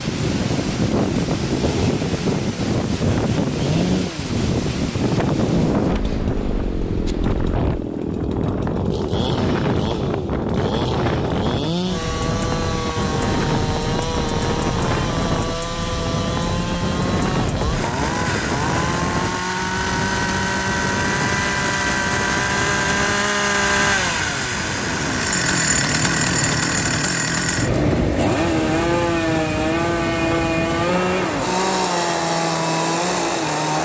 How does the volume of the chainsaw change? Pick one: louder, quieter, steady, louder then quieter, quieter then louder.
louder.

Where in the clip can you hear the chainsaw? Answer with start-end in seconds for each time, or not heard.
0.0-33.8.